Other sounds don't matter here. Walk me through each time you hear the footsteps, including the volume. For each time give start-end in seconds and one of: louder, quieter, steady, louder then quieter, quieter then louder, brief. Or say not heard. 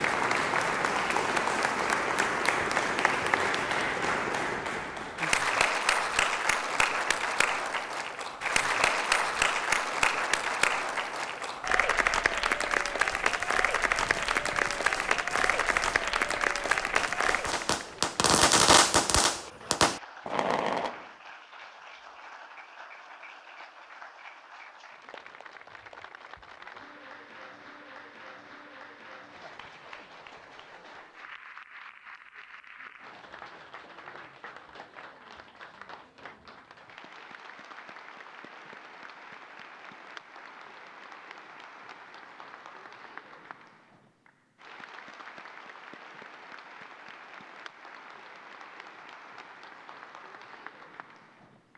not heard.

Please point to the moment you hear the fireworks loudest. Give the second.
19 s.